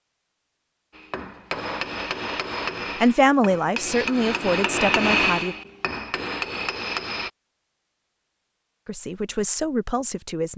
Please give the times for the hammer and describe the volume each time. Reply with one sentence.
The hammer can be heard from 0.9 to 7.3 s, getting louder then quieter.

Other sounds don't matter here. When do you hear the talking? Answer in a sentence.
The talking can be heard from 3.0 to 5.5 s and from 8.8 to 10.5 s.